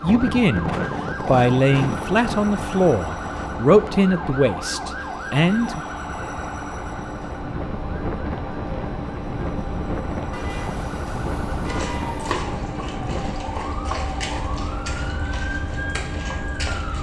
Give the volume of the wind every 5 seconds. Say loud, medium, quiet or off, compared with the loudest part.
loud, loud, loud, medium.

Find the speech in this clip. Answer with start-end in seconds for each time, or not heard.
0.0-5.8.